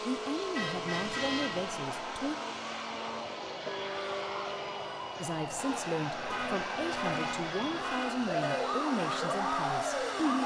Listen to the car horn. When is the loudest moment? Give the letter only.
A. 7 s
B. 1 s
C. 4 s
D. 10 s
B.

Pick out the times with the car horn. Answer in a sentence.
The car horn can be heard from 0.5 to 1.7 s and from 6.2 to 8.7 s.